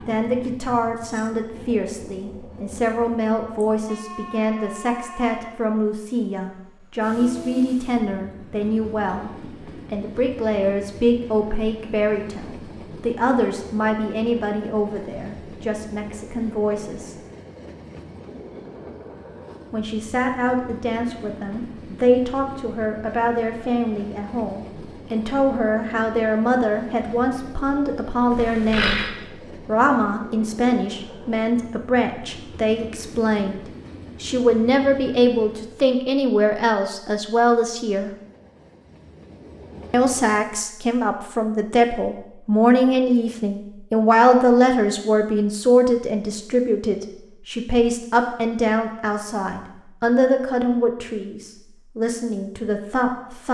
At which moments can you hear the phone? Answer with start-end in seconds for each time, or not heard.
28.3-29.1.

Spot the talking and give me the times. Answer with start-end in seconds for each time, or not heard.
0.1-17.1, 19.7-38.1, 39.9-53.4.